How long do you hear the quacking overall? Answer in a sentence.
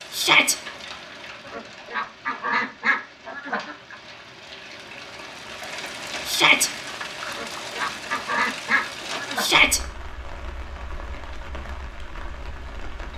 You can hear the quacking for 5 seconds altogether.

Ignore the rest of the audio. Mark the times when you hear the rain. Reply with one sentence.
You can hear the rain from 0.0 to 13.1 s.